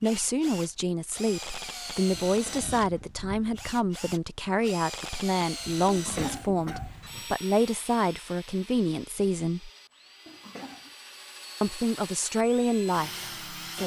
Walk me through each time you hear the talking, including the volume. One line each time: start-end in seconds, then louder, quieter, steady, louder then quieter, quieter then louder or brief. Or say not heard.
0.0-9.7 steady
11.6-13.8 brief.